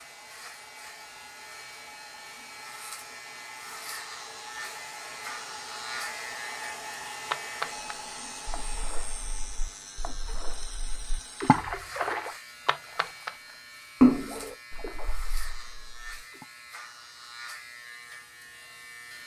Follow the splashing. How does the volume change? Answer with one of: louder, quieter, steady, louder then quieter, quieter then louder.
louder then quieter.